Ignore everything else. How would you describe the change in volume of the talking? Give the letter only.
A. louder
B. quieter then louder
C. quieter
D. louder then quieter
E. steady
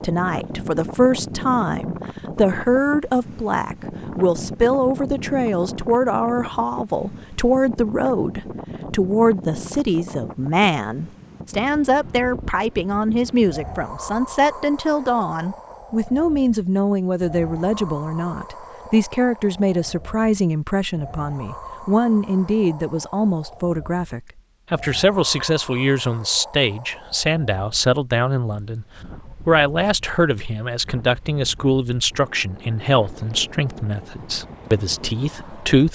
E.